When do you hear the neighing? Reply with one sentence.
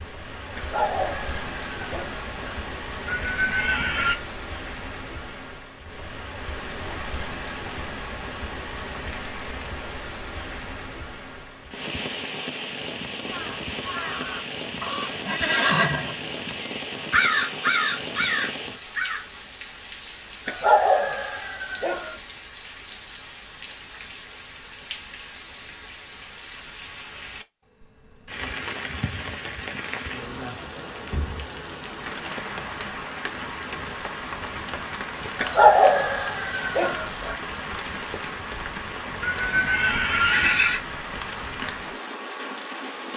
You can hear the neighing from 3.0 to 4.2 s, from 14.8 to 16.5 s and from 39.2 to 40.8 s.